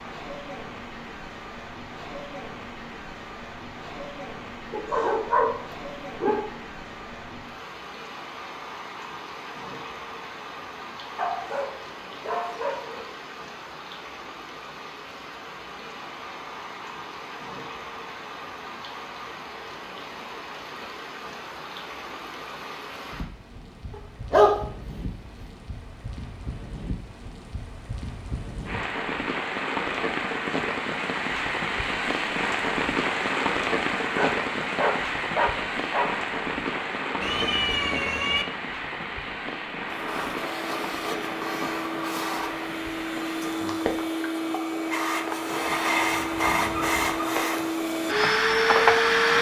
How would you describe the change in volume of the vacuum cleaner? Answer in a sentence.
The loudness of the vacuum cleaner goes up.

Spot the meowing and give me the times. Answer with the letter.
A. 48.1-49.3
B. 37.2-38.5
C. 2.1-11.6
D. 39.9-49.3
B.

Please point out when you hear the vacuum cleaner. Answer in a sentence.
You can hear the vacuum cleaner from 39.9 to 49.3 s.